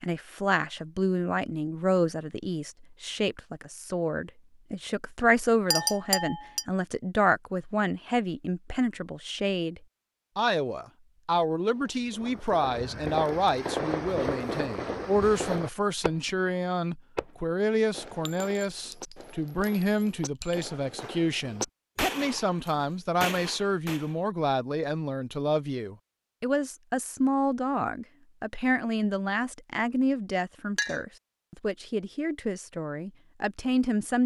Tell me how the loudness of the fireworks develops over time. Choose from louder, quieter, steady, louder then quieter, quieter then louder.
quieter then louder.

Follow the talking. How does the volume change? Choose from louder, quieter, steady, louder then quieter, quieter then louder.
steady.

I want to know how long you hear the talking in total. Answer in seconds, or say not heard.
34 s.